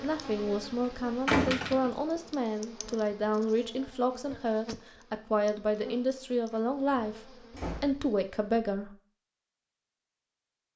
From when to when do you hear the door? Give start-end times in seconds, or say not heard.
1.2-2.0, 6.5-8.1.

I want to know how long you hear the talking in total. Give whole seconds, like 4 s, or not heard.
9 s.